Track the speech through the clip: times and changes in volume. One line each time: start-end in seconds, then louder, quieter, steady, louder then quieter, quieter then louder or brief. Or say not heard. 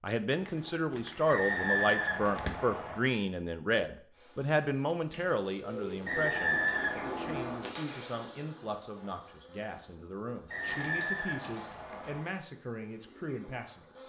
0.0-14.0 quieter.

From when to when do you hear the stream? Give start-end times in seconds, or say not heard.
not heard.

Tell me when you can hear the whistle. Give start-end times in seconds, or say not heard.
1.2-3.0, 6.0-7.7, 10.5-12.2.